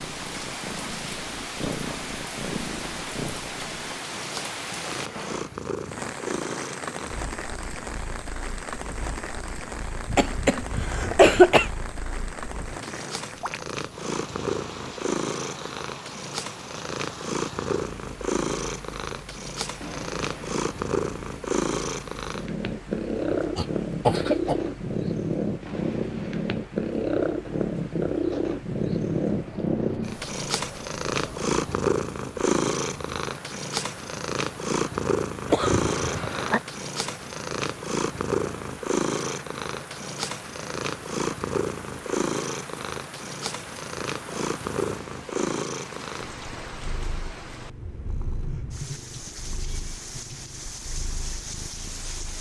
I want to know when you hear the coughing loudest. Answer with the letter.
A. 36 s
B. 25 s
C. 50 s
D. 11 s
D.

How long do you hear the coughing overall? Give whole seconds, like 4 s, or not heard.
4 s.